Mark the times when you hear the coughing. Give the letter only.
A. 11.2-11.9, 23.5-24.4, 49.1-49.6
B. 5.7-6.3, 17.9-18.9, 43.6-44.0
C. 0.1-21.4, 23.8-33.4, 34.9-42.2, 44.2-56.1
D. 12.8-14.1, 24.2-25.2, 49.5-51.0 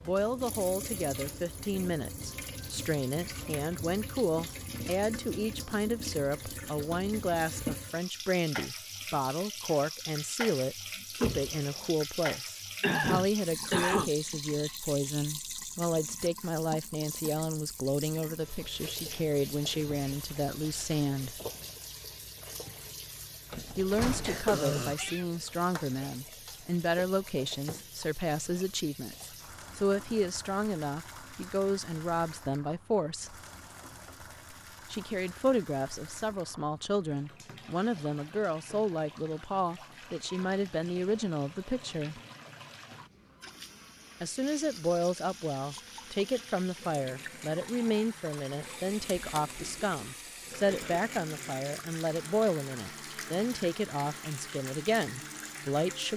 D.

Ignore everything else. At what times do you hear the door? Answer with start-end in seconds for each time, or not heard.
11.2-11.9, 23.5-24.4, 49.1-49.6.